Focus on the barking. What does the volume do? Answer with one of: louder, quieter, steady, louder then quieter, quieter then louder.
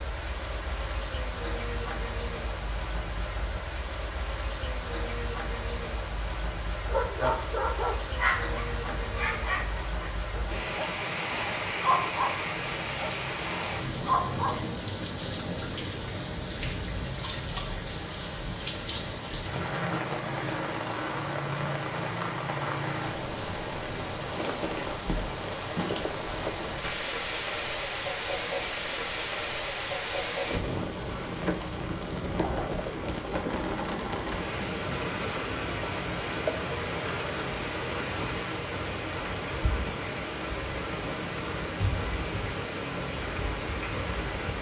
quieter then louder.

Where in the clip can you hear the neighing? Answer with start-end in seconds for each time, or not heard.
not heard.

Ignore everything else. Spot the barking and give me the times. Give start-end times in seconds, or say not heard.
6.9-14.6.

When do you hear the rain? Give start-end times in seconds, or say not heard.
0.0-44.5.